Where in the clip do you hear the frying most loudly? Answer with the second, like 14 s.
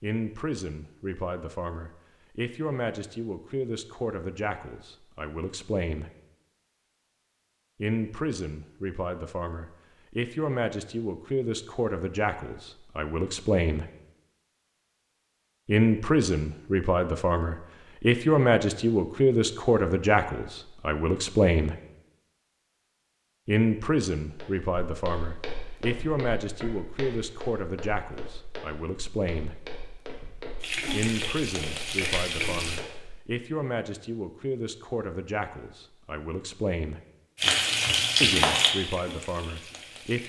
38 s.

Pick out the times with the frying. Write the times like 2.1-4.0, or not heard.
30.6-32.9, 37.4-40.2.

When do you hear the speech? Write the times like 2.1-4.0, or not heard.
0.0-6.1, 7.8-13.8, 15.7-21.8, 23.4-29.6, 30.9-37.0, 38.2-40.2.